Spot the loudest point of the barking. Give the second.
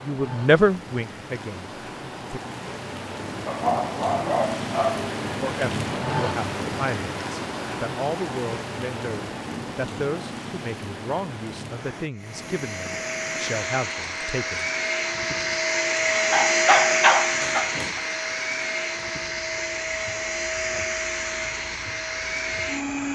17 s.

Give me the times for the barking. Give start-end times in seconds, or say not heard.
3.5-5.1, 16.3-18.0.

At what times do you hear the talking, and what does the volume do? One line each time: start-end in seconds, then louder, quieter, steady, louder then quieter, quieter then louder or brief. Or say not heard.
0.0-2.4 brief
5.4-14.7 steady.